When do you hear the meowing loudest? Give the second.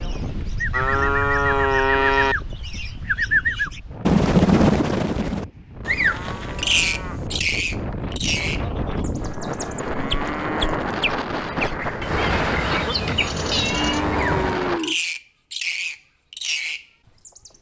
14 s.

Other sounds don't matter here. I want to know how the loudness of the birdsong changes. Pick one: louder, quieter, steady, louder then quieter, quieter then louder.
louder then quieter.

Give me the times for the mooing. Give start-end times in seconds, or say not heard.
0.7-2.4, 5.8-7.2, 9.2-10.9, 13.6-14.9.